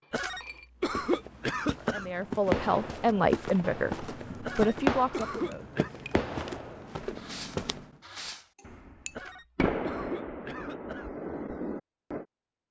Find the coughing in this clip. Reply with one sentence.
The coughing can be heard from 0.1 to 2.0 s, from 4.5 to 5.9 s and from 9.2 to 11.1 s.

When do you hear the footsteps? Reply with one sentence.
You can hear the footsteps from 0.8 to 8.0 s.